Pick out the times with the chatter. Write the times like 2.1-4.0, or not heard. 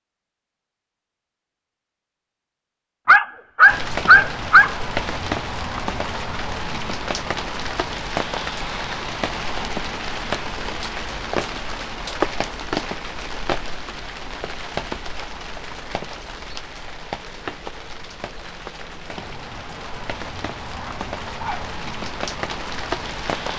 not heard.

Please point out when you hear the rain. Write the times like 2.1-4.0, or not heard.
3.6-23.5.